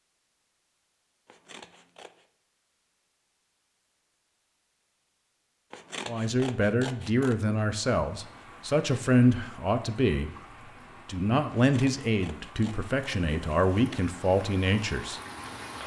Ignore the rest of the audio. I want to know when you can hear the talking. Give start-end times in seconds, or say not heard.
6.0-10.3, 11.1-15.2.